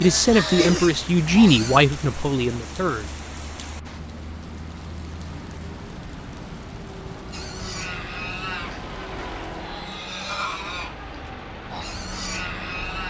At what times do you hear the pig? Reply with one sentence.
The pig can be heard from 0.0 to 1.8 s and from 7.3 to 13.0 s.